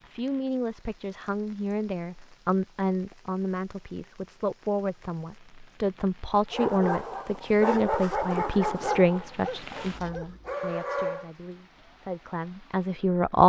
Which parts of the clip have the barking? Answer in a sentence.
You can hear the barking from 6.5 to 11.2 s.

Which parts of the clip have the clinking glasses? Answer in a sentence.
You can't hear the clinking glasses here.